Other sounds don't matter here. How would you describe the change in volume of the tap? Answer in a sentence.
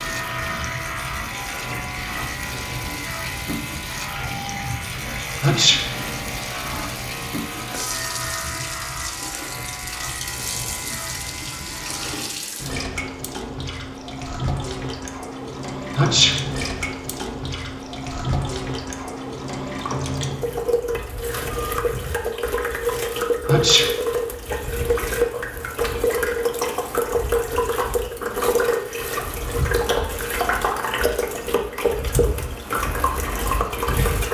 The loudness of the tap goes up.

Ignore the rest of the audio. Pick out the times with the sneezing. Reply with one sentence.
You can hear the sneezing from 5.4 to 5.8 s, from 15.9 to 16.4 s and from 23.4 to 23.9 s.